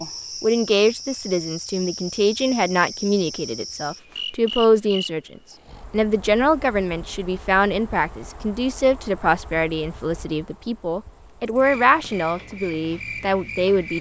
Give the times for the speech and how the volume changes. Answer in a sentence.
You can hear the speech from 0.4 to 13.9 s, at a steady volume.